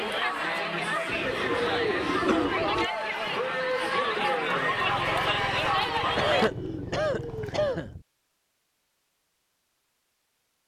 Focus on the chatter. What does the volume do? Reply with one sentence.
The loudness of the chatter stays about the same.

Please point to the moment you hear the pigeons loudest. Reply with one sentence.
The loudest moment of the pigeons is at 2 seconds.